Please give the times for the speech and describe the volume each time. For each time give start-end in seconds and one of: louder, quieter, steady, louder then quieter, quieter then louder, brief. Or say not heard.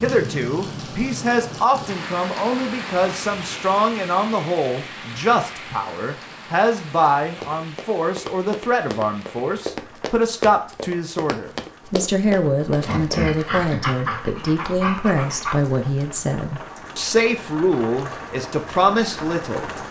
0.0-19.6 steady.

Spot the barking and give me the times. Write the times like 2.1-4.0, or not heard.
12.8-15.6.